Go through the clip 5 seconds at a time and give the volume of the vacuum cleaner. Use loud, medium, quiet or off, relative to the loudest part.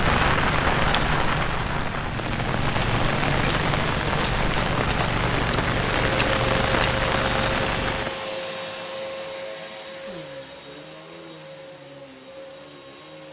off, loud, medium.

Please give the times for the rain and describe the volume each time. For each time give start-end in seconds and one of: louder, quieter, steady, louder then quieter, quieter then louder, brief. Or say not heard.
0.0-8.2 steady.